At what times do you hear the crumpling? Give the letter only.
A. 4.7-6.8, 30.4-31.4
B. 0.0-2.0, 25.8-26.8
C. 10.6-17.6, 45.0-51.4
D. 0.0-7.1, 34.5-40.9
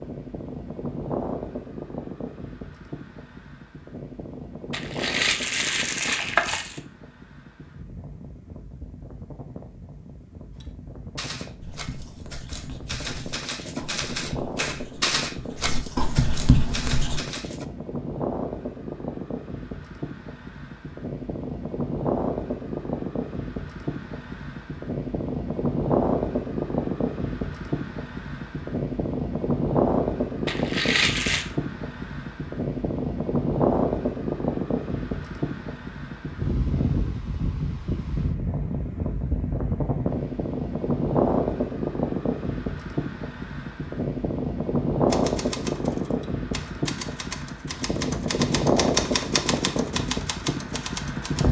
A.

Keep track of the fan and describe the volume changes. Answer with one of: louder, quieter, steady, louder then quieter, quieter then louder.
louder.